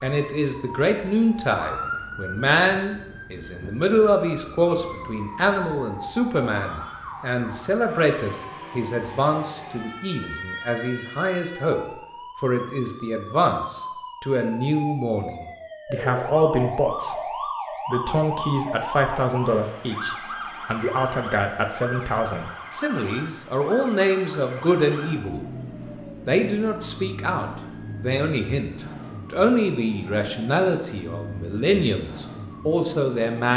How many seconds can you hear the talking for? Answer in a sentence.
You can hear the talking for 32 seconds altogether.